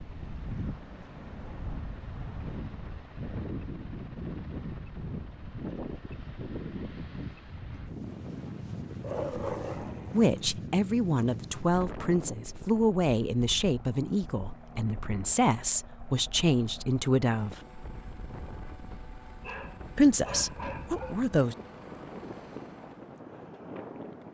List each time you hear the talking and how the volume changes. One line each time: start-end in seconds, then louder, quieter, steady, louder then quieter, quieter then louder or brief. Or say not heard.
10.1-17.6 steady
19.9-21.6 brief.